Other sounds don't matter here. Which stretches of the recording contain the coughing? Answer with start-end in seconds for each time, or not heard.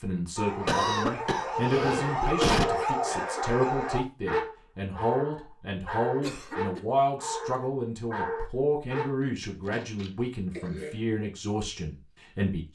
0.7-2.6, 6.2-6.8, 9.7-11.0.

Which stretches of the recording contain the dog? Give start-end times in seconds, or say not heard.
0.3-9.1.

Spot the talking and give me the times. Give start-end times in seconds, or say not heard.
0.0-12.7.